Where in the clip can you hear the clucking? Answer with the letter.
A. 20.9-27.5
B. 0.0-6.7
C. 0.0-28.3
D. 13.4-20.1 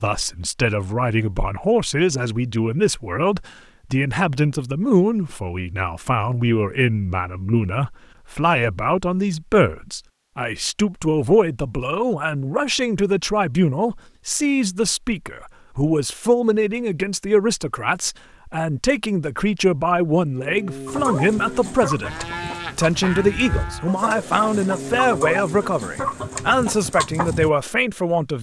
A.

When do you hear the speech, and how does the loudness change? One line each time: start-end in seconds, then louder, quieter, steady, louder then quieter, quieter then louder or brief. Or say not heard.
0.0-28.3 steady.